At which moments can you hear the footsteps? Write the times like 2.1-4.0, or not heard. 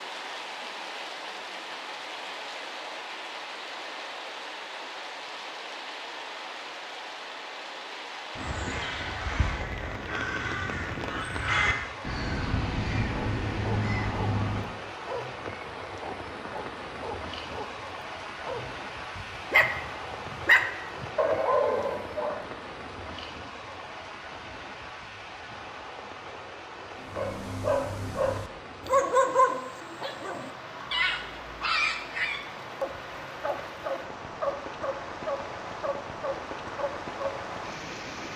not heard.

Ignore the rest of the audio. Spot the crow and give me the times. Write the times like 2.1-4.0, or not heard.
8.3-14.7.